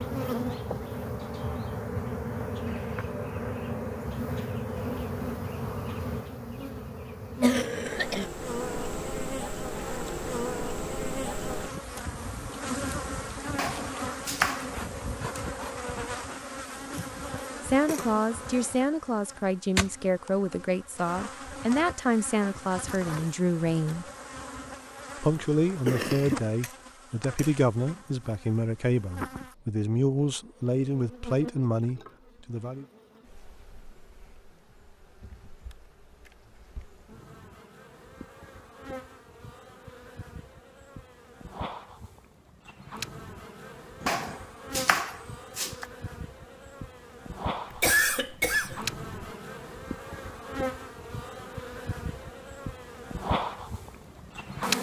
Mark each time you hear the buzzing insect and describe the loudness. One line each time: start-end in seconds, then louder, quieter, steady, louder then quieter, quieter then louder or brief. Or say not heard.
0.0-54.7 quieter then louder.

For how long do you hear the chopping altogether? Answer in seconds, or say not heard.
3 s.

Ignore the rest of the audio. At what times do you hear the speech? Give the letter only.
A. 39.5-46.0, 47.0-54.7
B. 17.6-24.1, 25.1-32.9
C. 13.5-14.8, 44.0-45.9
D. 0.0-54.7
B.